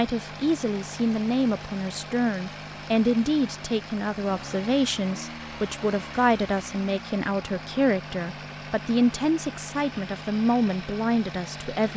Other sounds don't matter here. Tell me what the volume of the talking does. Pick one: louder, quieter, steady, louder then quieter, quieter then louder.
steady.